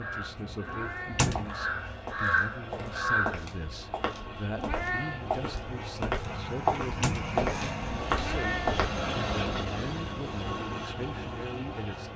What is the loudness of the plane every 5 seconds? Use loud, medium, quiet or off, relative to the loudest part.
medium, loud, loud.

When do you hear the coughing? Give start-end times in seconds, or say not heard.
not heard.